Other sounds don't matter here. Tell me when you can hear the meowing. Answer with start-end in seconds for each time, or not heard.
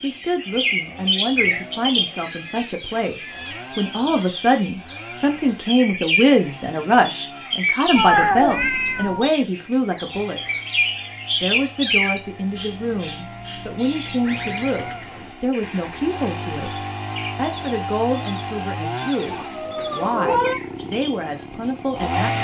2.2-3.7, 8.0-9.3, 19.3-20.6.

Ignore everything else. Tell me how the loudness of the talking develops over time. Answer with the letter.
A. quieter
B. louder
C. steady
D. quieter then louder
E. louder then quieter
E.